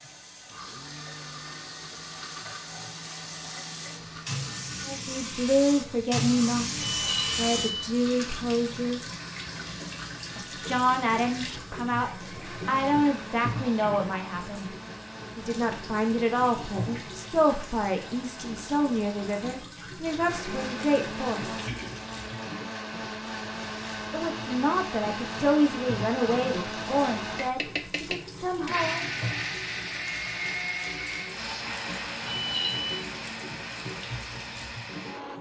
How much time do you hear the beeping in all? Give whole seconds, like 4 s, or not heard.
2 s.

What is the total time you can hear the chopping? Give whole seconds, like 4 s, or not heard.
not heard.